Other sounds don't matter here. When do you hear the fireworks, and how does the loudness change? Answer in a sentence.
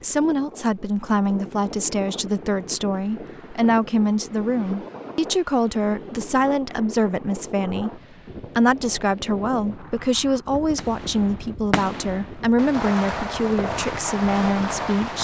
The fireworks can be heard from 10.8 to 15.2 s, getting quieter then louder.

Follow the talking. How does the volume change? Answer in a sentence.
The volume of the talking stays about the same.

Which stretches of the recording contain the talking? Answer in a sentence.
The talking can be heard from 0.0 to 15.2 s.